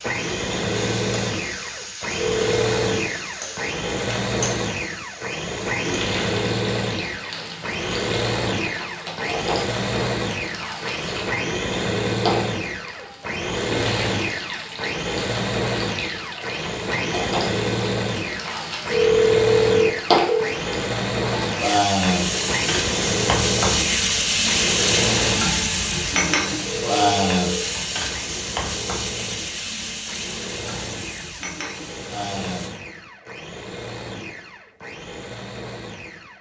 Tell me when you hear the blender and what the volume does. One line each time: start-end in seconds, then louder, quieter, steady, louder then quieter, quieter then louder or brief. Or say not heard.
0.0-36.3 quieter.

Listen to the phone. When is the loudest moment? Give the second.
19 s.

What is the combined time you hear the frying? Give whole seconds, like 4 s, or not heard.
33 s.